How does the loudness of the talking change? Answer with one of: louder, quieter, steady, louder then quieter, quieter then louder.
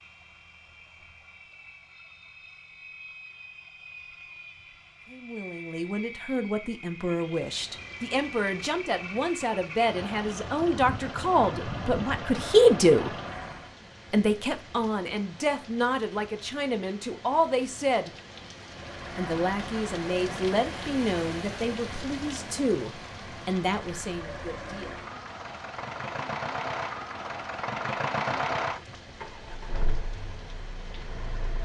louder then quieter.